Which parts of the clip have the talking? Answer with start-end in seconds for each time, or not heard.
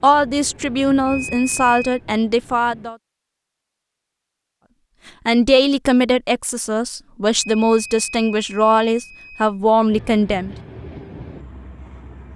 0.0-3.0, 5.2-10.6.